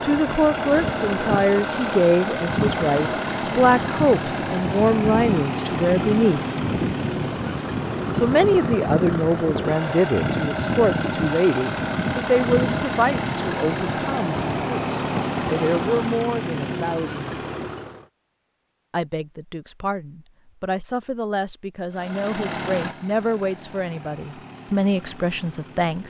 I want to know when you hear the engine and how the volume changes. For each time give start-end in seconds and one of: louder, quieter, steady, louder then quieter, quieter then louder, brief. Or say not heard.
0.0-18.1 steady
21.9-26.0 quieter.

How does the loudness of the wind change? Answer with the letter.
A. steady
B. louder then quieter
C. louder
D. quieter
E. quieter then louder
A.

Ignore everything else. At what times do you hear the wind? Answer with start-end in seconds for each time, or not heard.
0.0-16.1.